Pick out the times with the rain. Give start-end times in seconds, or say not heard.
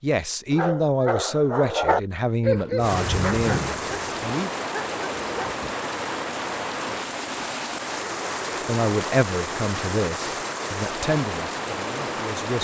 2.8-12.5.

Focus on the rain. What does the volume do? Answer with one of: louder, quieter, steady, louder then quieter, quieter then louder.
steady.